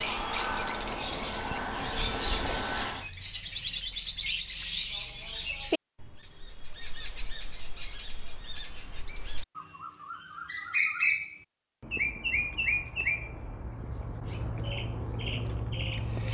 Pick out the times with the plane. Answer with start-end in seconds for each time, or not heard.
0.0-3.1.